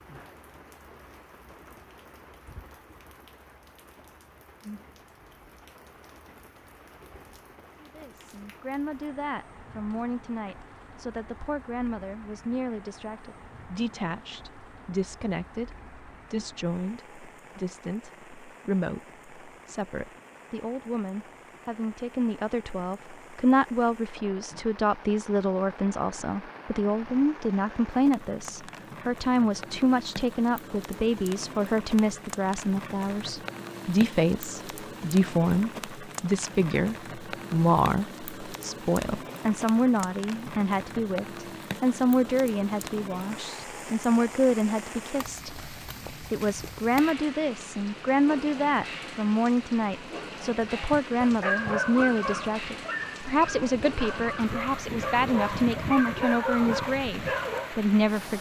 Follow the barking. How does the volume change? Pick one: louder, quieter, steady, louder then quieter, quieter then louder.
quieter then louder.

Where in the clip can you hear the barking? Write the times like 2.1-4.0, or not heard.
50.7-57.8.